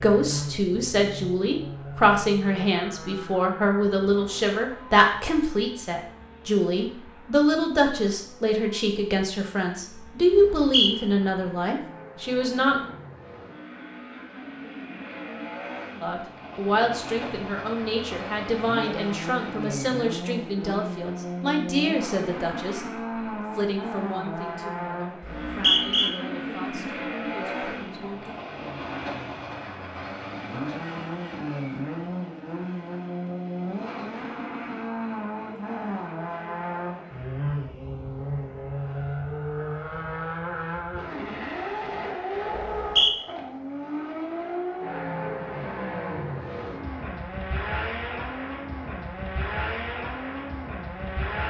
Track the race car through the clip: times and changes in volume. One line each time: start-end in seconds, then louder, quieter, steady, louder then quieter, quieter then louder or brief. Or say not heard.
0.0-51.4 louder.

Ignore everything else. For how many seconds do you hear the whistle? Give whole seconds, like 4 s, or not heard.
2 s.